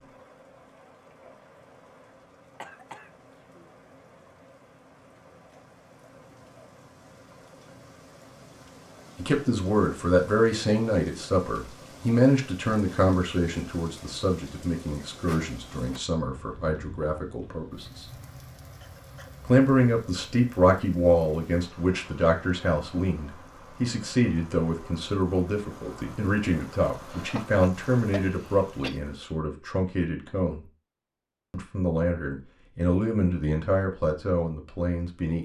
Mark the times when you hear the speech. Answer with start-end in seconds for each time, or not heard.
9.2-18.1, 19.4-30.6, 31.5-35.3.